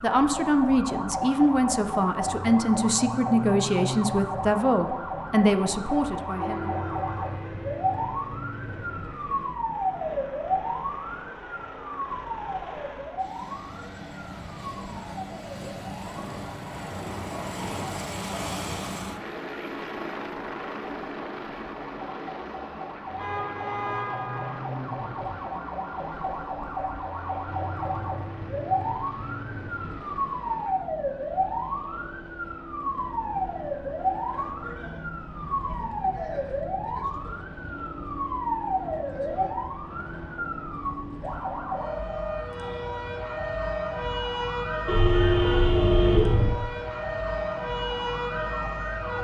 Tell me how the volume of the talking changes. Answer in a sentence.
The loudness of the talking stays about the same.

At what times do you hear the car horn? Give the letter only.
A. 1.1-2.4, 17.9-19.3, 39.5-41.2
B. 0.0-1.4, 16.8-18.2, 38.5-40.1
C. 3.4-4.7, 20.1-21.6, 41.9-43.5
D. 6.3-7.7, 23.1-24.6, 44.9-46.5
D.